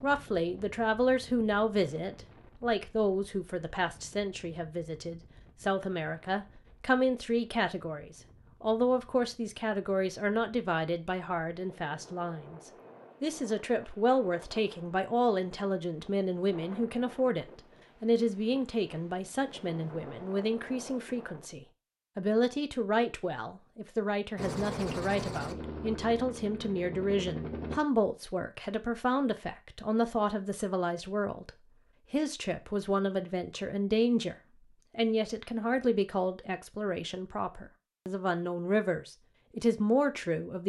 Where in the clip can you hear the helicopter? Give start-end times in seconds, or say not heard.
24.4-27.8.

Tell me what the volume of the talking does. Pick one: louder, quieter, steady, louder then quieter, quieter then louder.
steady.